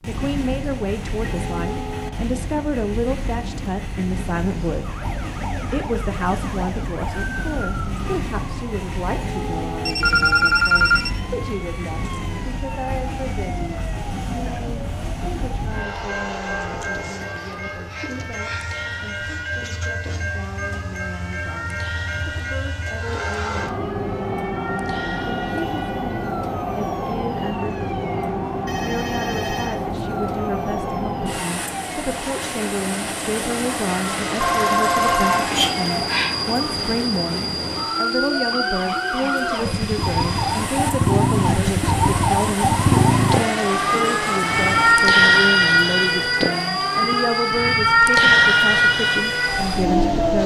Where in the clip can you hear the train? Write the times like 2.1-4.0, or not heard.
0.0-50.4.